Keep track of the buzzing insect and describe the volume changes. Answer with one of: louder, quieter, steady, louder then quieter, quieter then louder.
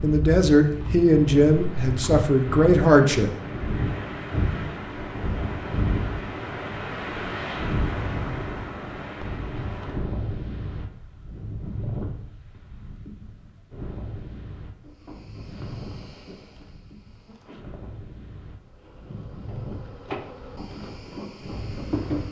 quieter then louder.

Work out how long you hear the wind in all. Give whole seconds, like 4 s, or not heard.
22 s.